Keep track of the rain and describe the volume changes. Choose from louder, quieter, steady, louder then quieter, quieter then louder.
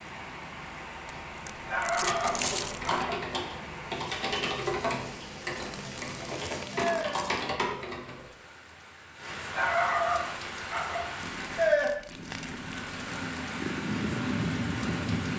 louder then quieter.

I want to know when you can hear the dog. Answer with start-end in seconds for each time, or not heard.
1.6-3.2, 9.5-11.1.